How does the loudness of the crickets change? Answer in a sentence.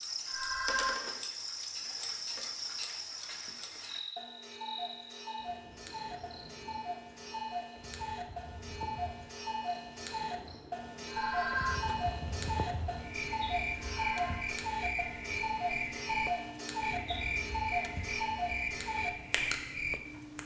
The volume of the crickets goes down, then up.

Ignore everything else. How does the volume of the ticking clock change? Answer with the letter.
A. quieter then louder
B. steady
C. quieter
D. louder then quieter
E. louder
E.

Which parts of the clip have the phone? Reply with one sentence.
You can hear the phone from 0.2 to 1.1 s, from 11.1 to 12.0 s and from 13.7 to 14.6 s.